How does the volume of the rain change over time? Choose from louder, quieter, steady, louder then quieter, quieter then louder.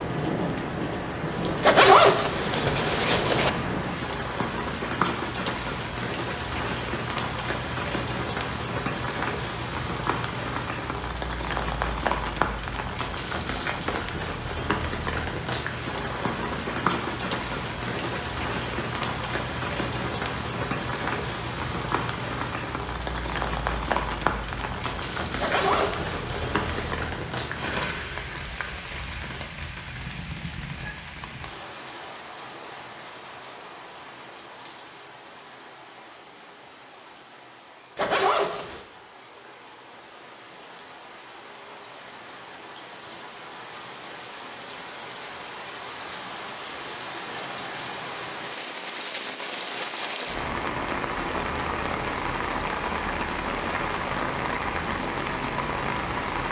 quieter then louder.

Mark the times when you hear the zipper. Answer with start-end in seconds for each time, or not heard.
1.6-3.5, 25.4-26.9, 38.0-38.9.